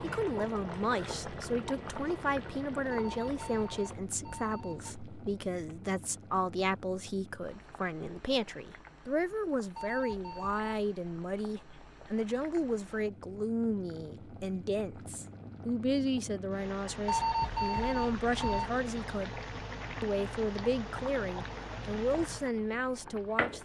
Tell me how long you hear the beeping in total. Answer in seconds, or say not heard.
5 s.